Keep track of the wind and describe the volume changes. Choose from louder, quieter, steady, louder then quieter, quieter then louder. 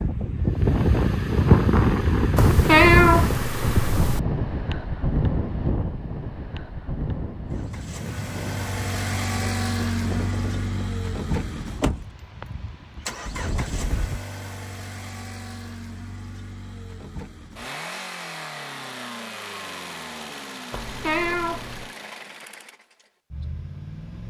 quieter.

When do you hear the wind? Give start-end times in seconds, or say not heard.
0.0-14.2.